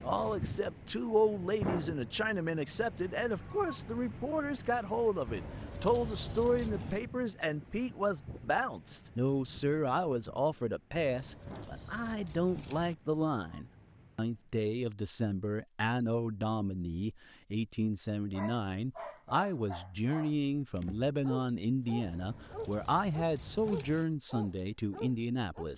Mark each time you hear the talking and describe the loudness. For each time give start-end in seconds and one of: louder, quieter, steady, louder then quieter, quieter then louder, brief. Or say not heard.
0.0-25.7 steady.